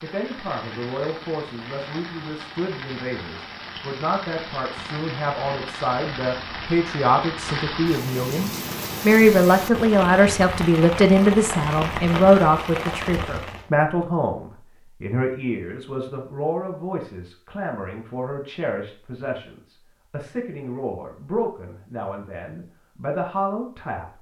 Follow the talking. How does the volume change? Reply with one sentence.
The volume of the talking goes up, then down.